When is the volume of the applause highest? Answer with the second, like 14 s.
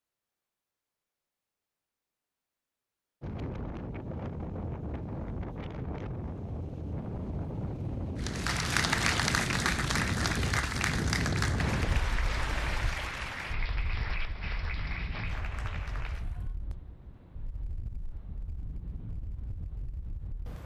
9 s.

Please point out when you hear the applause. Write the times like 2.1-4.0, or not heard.
8.2-16.6.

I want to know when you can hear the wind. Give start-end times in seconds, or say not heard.
3.2-20.6.